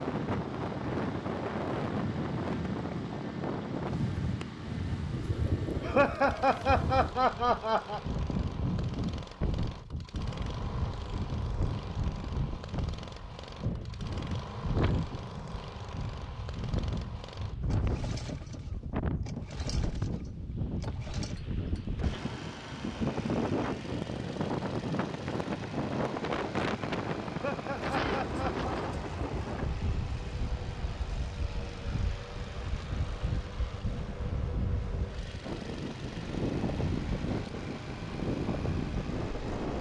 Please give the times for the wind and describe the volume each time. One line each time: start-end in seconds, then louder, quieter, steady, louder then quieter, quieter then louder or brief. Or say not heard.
0.0-39.7 steady.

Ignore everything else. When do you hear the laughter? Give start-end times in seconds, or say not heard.
5.8-8.0, 27.3-28.6.